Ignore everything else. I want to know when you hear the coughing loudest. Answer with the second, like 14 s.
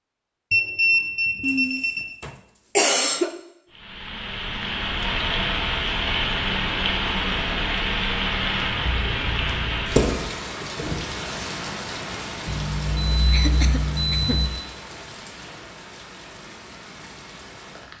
3 s.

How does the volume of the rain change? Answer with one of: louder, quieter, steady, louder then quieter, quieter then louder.
quieter.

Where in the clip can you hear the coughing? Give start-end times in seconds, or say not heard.
1.4-3.3, 13.3-14.4.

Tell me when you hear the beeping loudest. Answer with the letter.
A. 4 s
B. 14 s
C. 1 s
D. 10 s
C.